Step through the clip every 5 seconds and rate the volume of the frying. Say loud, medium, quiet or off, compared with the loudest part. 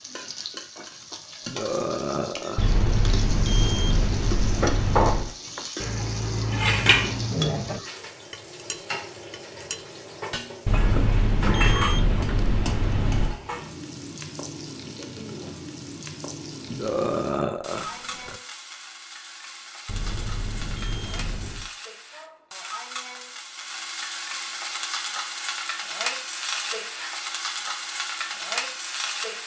medium, medium, medium, medium, medium, loud.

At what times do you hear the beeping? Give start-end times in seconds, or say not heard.
2.5-5.3, 10.7-13.3, 19.9-21.7.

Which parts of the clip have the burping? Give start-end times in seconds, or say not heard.
1.4-2.8, 16.7-18.4.